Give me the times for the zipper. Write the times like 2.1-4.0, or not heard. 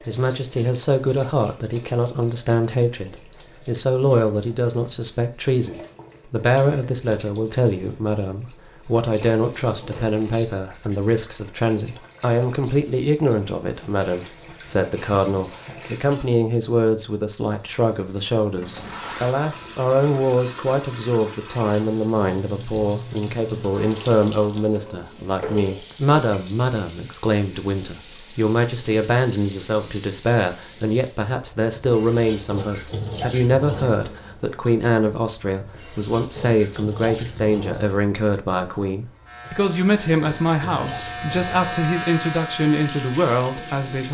18.6-19.4.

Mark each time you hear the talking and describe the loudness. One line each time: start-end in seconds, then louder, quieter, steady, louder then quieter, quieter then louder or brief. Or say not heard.
0.1-44.0 steady.